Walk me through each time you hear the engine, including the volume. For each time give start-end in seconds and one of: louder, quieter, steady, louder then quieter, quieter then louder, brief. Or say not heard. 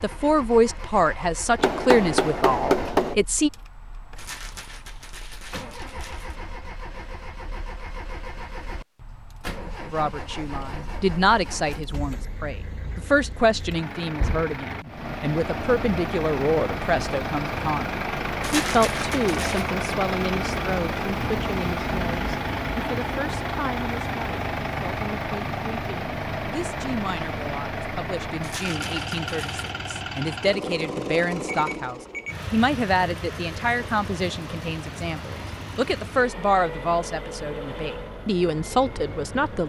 0.0-39.6 louder then quieter.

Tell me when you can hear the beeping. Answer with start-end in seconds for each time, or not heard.
31.4-32.4.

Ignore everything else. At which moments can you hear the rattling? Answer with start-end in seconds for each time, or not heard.
4.2-6.3, 18.4-19.7, 28.4-29.8.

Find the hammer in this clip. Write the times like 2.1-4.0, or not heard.
1.6-3.1.